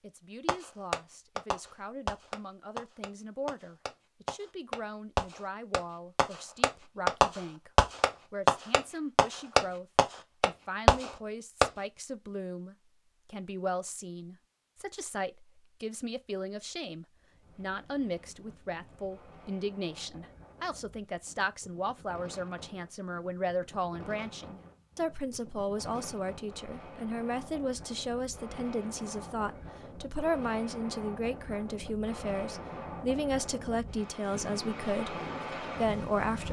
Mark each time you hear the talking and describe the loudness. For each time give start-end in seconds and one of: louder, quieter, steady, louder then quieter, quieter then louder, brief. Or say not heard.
0.0-36.4 louder.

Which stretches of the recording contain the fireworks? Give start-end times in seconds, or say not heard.
0.5-11.7.